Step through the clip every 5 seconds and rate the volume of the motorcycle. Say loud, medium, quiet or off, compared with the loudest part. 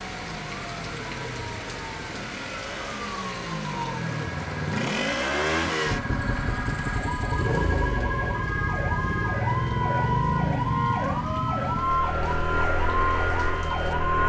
medium, loud, loud.